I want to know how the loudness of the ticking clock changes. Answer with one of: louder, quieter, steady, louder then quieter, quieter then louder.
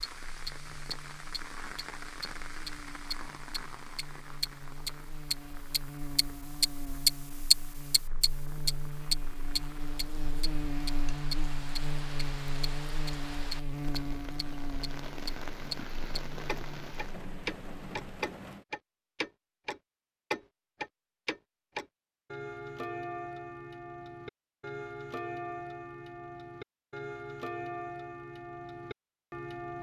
quieter.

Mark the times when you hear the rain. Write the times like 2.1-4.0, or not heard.
0.0-18.6.